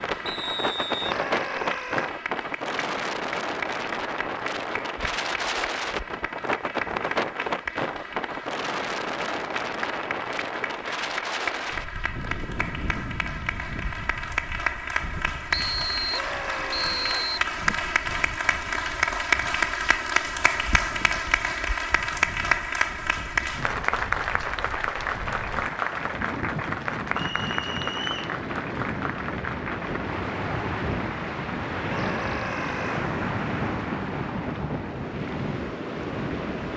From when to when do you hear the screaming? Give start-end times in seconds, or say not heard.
0.9-2.1, 16.1-17.3, 31.9-33.0.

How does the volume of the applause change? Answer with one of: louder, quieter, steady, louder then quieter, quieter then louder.
louder then quieter.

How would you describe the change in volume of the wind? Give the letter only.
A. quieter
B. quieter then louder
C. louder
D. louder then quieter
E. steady
B.